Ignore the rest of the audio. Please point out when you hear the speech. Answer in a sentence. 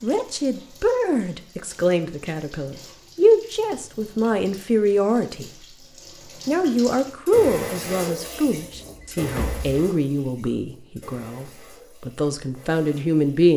The speech can be heard from 0.0 to 5.5 s and from 6.5 to 13.5 s.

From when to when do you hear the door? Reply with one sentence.
The door can be heard from 8.7 to 9.8 s.